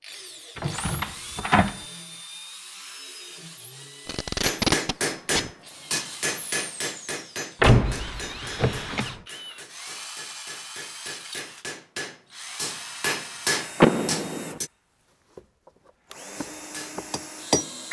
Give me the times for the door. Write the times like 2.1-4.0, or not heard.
0.6-1.8, 7.6-9.2, 13.8-14.6.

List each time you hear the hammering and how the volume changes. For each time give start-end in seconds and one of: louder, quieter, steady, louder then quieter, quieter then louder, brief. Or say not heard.
4.4-14.7 quieter then louder
16.4-17.8 brief.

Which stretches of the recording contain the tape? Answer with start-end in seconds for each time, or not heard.
4.0-5.5.